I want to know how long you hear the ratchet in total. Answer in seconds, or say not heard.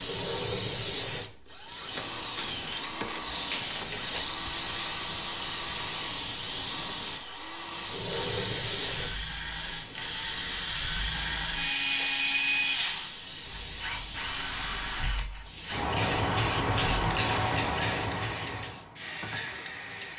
2 s.